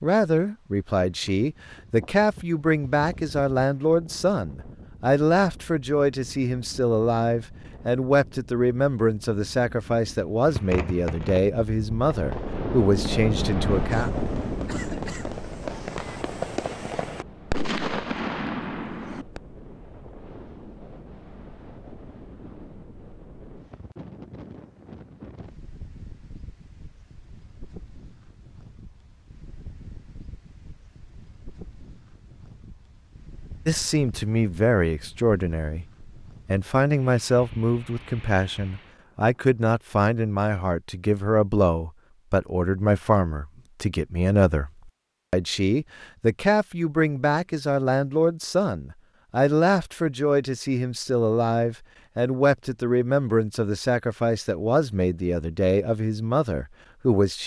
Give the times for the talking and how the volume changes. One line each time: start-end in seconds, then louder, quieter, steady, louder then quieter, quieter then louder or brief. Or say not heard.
0.0-14.2 steady
33.6-57.4 steady.